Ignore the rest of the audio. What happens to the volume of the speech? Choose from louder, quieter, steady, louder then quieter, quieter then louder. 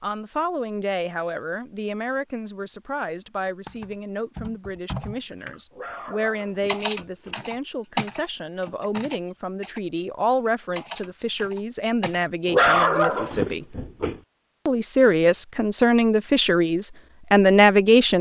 louder.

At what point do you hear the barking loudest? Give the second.
13 s.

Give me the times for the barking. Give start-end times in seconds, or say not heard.
5.7-7.4, 12.4-14.2.